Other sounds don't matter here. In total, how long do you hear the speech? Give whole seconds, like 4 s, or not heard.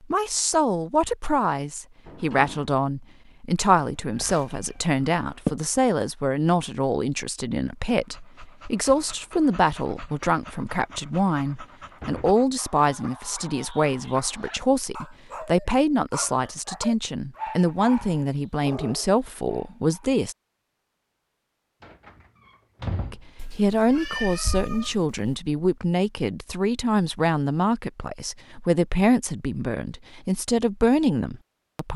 29 s.